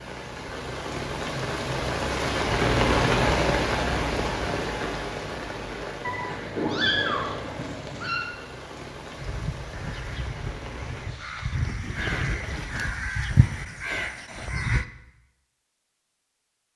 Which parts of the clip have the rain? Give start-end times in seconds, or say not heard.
0.0-11.1.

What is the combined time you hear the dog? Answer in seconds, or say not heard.
not heard.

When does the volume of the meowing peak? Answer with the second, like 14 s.
7 s.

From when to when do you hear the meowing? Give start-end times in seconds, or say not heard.
6.0-8.2.